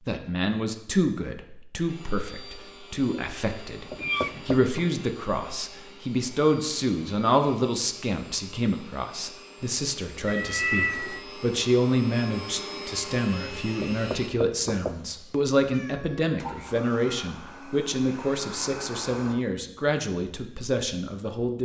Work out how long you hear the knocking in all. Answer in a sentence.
The knocking can be heard for 2 seconds in total.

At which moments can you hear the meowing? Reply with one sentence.
The meowing can be heard from 4.0 to 4.5 s, from 10.2 to 11.2 s and from 14.8 to 16.2 s.